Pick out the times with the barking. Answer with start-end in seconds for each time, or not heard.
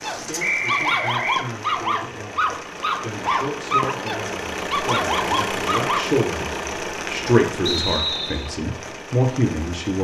0.0-6.0.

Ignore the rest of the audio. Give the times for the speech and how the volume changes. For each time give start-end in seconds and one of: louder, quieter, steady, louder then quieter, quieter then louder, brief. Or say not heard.
0.1-9.9 louder.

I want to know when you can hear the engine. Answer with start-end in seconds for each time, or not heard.
0.4-9.9.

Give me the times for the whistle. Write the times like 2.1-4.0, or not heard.
0.4-1.4, 7.7-8.5.